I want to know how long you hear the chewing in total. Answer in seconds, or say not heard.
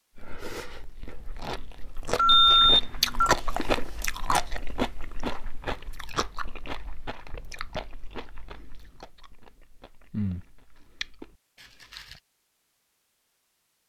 12 s.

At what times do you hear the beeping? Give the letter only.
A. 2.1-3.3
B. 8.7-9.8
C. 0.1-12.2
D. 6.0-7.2
A.